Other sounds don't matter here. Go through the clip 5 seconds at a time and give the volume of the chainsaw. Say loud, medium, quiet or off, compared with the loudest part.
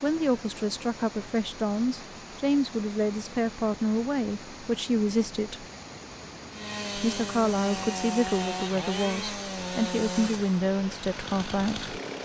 off, loud, loud.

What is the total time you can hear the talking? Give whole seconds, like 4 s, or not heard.
11 s.